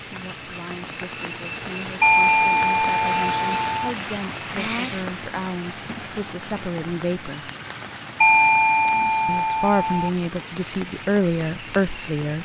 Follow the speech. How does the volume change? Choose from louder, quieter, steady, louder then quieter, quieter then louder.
louder.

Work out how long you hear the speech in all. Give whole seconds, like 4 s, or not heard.
11 s.